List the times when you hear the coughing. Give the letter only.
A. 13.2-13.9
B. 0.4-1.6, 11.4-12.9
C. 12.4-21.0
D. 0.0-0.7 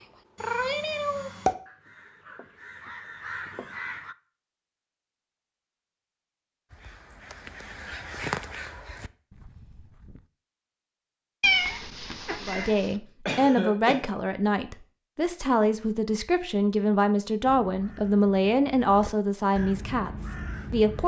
A.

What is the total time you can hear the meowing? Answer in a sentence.
You can hear the meowing for 3 seconds altogether.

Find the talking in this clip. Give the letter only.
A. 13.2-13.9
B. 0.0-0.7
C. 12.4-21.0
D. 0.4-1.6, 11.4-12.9
C.